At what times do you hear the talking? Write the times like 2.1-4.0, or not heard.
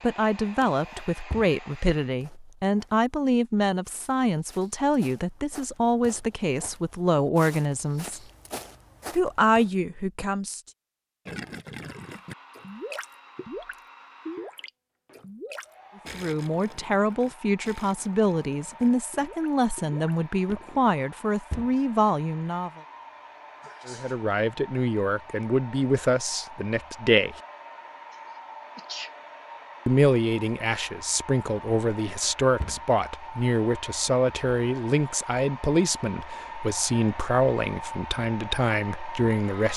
0.0-8.2, 9.2-10.6, 16.1-22.8, 23.9-27.4, 29.9-39.7.